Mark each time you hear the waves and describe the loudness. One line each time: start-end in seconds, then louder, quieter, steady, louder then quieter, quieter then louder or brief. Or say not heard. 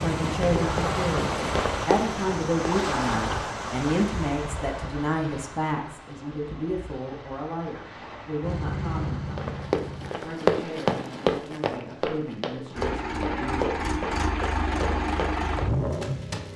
0.0-11.4 quieter.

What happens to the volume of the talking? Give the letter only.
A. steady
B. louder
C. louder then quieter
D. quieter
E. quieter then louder
D.